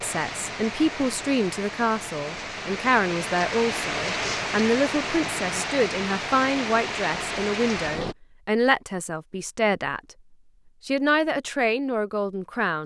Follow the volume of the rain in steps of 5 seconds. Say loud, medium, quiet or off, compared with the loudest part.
loud, loud, off.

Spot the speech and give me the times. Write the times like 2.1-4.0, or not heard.
0.0-10.0, 10.8-12.8.